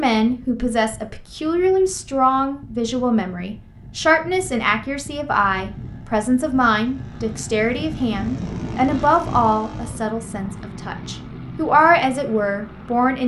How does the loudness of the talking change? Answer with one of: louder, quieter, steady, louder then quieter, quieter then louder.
steady.